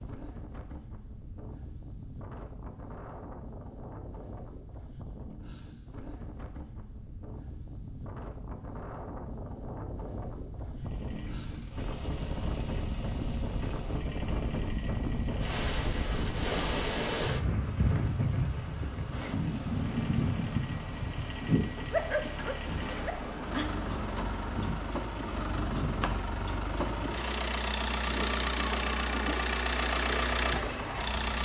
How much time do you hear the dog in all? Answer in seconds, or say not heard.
2 s.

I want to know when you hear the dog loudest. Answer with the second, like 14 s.
22 s.